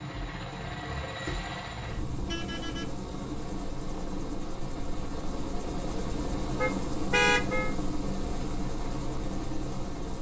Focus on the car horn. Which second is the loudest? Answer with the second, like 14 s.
7 s.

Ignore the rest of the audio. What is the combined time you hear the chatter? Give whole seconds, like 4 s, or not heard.
not heard.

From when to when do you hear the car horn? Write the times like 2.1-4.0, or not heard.
1.6-3.0, 6.5-7.8.